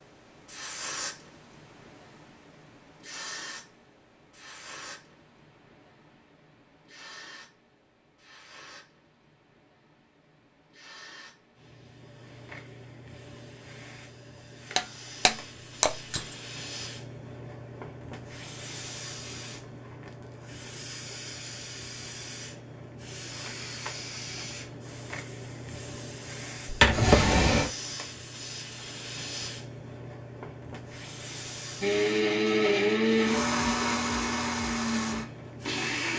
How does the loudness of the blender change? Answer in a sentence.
The loudness of the blender goes down.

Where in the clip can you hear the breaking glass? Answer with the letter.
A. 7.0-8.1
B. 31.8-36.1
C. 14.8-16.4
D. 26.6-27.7
C.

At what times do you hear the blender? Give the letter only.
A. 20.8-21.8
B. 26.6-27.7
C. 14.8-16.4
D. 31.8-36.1
D.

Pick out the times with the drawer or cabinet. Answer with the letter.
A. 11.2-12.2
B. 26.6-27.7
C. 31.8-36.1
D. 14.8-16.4
B.